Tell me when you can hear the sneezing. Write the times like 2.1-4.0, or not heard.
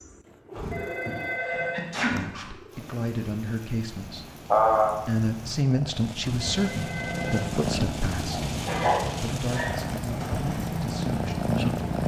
1.1-2.1, 4.1-5.0, 8.3-9.8.